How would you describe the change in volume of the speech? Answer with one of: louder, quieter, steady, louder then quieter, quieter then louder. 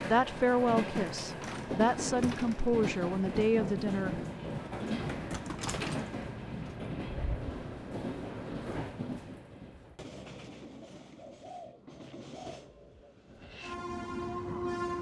quieter then louder.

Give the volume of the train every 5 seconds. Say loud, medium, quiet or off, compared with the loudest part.
loud, loud, medium.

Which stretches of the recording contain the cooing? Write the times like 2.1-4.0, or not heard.
10.8-13.2.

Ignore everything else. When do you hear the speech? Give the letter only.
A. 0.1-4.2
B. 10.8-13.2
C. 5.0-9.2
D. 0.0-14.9
A.